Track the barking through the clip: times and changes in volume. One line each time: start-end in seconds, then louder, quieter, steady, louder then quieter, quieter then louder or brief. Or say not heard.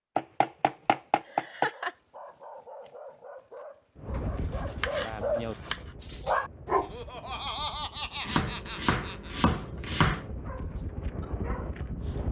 1.7-7.3 louder
10.4-12.2 brief.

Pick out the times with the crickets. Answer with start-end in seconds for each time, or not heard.
not heard.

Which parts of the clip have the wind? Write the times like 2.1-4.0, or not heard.
4.0-12.2.